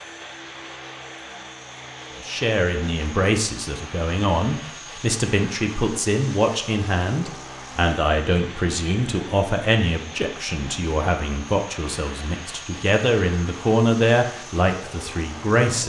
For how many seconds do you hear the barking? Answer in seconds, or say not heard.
not heard.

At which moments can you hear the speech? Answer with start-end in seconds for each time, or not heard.
2.1-15.8.